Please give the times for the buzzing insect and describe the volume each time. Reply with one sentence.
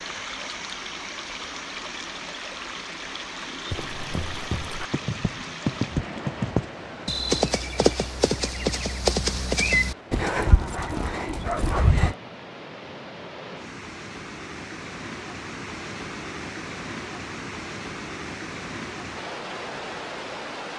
The buzzing insect can't be heard in this clip.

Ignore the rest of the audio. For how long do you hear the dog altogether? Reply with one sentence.
The dog can be heard for 2 seconds in total.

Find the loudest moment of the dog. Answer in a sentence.
The volume of the dog peaks at 12 seconds.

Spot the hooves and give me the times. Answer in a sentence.
You can hear the hooves from 3.7 to 12.2 s.